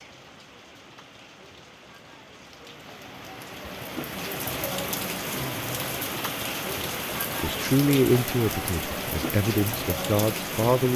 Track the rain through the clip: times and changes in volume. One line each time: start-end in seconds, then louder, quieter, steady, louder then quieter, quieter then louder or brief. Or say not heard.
0.0-10.9 louder.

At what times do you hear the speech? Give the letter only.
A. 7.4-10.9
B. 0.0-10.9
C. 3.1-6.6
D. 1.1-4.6
A.